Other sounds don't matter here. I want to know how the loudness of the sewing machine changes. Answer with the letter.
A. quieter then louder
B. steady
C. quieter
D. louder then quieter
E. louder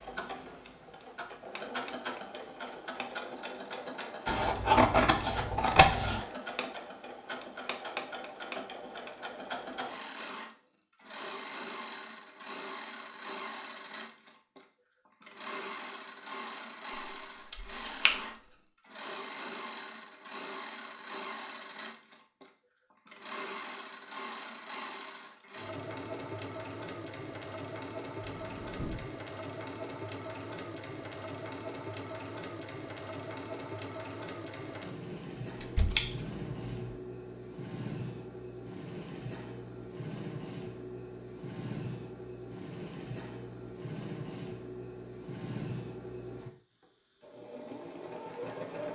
B.